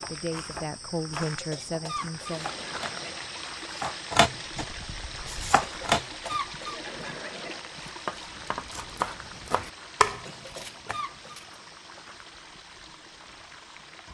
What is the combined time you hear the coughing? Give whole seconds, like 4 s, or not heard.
5 s.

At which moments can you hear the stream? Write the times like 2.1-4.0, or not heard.
2.1-14.0.